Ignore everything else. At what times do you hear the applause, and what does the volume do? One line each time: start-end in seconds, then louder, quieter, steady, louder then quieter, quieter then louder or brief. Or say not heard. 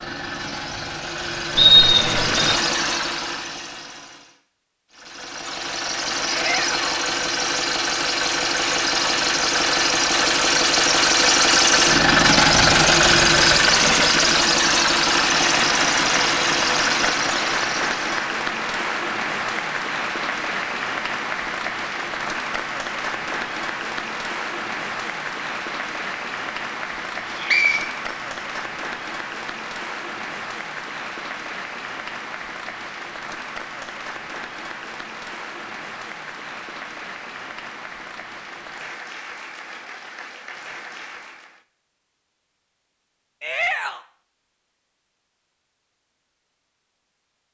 15.2-41.6 quieter.